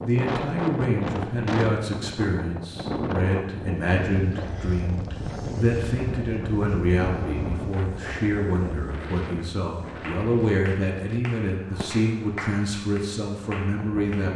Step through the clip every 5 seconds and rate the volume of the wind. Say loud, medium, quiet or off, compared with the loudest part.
loud, loud, medium.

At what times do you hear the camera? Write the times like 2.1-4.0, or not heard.
not heard.